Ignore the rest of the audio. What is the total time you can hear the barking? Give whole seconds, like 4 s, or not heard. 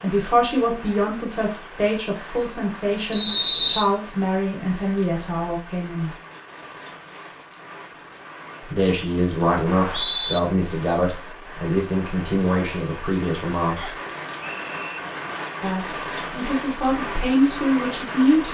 not heard.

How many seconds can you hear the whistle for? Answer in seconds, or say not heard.
3 s.